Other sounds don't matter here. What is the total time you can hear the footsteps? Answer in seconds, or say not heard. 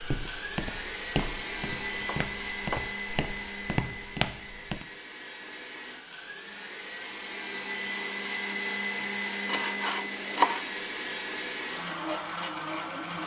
5 s.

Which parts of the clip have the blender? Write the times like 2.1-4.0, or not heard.
0.0-13.2.